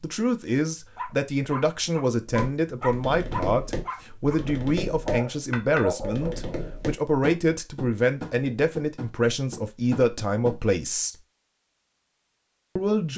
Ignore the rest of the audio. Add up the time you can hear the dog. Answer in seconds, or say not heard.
6 s.